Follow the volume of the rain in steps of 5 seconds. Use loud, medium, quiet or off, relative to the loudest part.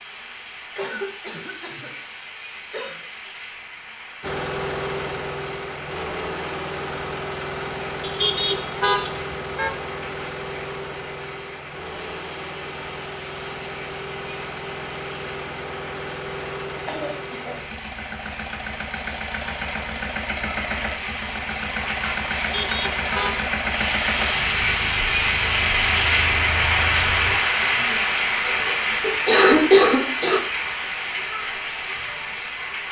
quiet, quiet, quiet, quiet, medium, loud, medium.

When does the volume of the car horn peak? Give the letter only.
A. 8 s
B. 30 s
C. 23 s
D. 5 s
A.